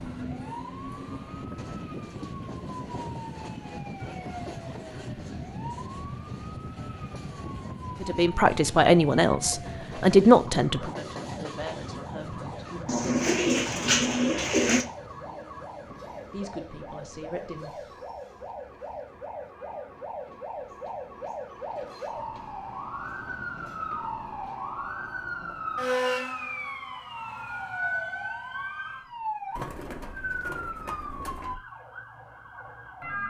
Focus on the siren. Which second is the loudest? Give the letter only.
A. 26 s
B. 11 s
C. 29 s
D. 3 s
A.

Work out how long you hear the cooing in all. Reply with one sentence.
You can hear the cooing for 4 seconds altogether.